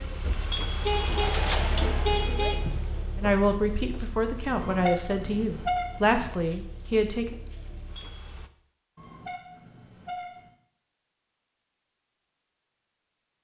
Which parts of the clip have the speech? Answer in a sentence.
You can hear the speech from 2.2 to 7.3 s.